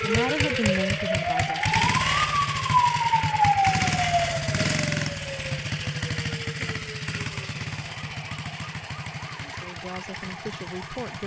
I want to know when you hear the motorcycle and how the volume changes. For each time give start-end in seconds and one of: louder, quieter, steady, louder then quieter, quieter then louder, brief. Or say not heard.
0.0-11.2 quieter.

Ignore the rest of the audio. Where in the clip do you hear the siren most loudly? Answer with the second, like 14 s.
3 s.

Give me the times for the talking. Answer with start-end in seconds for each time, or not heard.
0.0-1.8, 9.4-11.2.